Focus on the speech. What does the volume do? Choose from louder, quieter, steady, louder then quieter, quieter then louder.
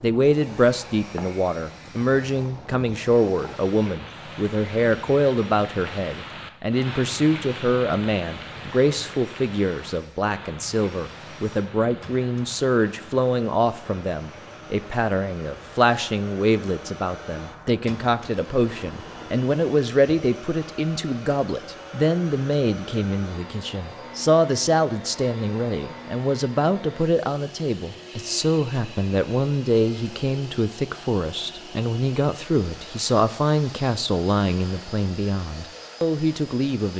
steady.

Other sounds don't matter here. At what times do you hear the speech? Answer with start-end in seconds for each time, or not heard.
0.0-36.9.